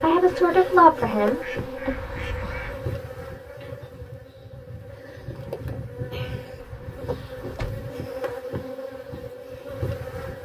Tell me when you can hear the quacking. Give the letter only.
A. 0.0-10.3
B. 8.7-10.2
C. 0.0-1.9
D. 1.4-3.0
D.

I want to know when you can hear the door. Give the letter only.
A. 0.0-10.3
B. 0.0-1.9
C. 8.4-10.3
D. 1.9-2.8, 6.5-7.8
D.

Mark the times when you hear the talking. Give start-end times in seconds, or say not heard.
0.0-1.9.